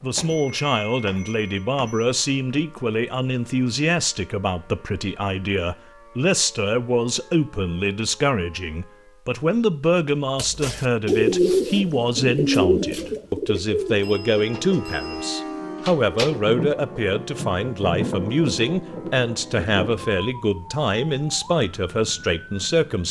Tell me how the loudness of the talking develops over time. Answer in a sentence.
The loudness of the talking stays about the same.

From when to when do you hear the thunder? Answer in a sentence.
You can hear the thunder from 16.3 to 20.1 s.